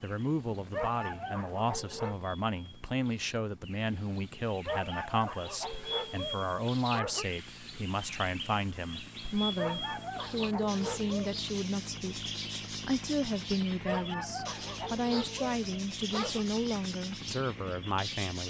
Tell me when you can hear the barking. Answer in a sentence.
You can hear the barking from 0.7 to 2.2 s, from 4.7 to 7.2 s, from 9.6 to 11.4 s and from 13.8 to 16.4 s.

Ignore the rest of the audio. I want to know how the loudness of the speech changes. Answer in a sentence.
The volume of the speech stays about the same.